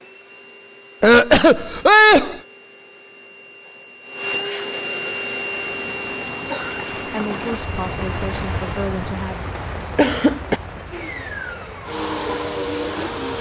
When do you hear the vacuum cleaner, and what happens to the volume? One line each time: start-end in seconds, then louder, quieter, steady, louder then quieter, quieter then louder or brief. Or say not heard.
0.0-8.8 louder then quieter
10.9-13.3 brief.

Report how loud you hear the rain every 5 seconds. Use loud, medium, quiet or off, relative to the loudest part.
off, loud, medium.